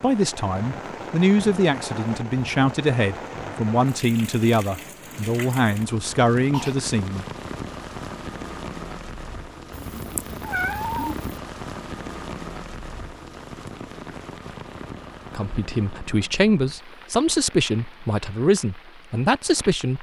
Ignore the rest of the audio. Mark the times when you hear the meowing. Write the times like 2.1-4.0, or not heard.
9.8-11.4.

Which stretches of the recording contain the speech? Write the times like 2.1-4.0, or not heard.
0.0-7.2, 15.3-19.9.